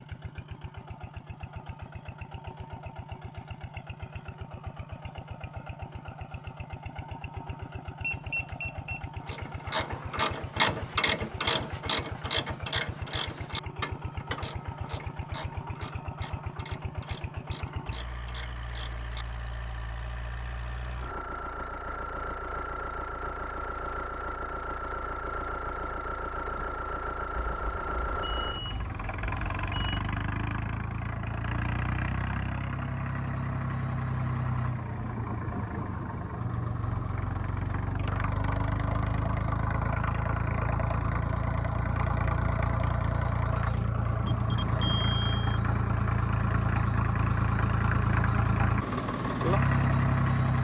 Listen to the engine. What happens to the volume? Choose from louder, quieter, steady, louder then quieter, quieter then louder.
louder.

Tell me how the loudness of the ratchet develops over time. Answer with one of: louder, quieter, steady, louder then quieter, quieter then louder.
quieter.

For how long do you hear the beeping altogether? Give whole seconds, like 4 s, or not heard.
5 s.